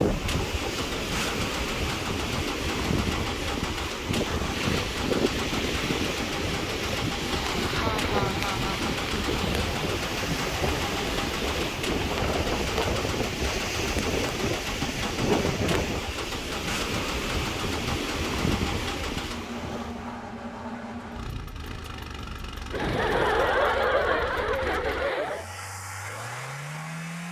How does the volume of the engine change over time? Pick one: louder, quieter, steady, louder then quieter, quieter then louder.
steady.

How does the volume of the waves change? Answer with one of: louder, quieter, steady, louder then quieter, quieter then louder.
steady.